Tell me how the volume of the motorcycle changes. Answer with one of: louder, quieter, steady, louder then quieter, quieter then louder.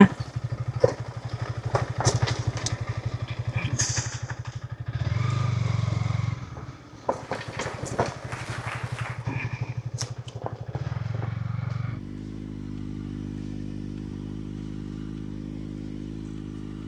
quieter.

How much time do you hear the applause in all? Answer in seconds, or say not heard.
2 s.